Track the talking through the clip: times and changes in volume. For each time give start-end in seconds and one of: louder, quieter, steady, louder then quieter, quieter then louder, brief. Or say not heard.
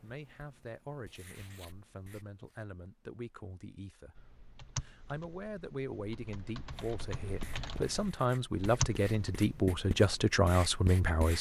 0.0-11.3 louder.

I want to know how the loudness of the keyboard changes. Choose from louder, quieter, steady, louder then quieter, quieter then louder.
quieter then louder.